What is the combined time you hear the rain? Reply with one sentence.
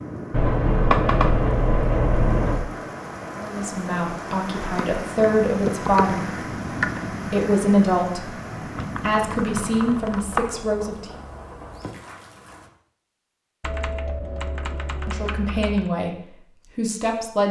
You can hear the rain for 13 seconds altogether.